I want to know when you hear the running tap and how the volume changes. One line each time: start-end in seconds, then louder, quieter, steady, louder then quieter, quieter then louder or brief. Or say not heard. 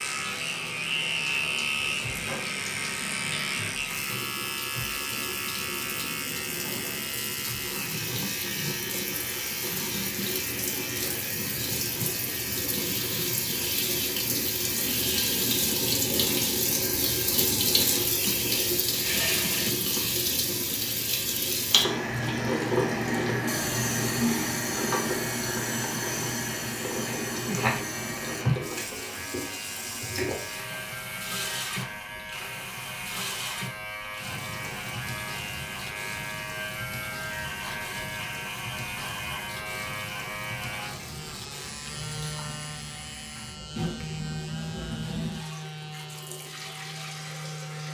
0.0-47.8 louder then quieter.